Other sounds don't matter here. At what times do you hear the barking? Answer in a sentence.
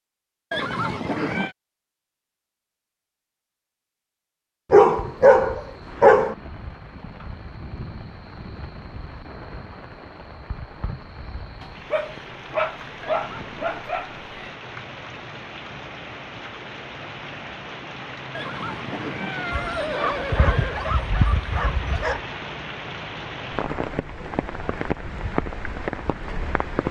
The barking can be heard from 4.7 to 6.3 s, from 11.6 to 14.2 s and from 19.5 to 22.2 s.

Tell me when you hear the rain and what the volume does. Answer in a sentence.
The rain can be heard from 4.8 to 26.8 s, getting louder.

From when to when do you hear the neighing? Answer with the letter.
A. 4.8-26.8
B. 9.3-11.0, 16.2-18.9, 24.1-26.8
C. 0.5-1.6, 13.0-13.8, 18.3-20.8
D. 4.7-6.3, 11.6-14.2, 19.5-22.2
C.